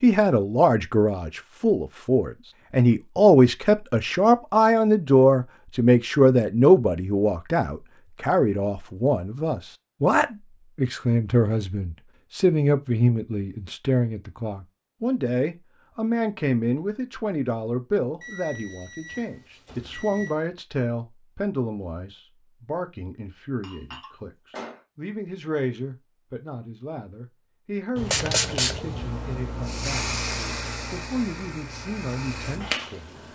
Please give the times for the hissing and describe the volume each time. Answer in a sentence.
The hissing can be heard from 27.9 to 33.3 s, getting quieter then louder.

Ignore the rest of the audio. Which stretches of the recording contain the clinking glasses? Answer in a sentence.
The clinking glasses can be heard from 23.6 to 24.8 s.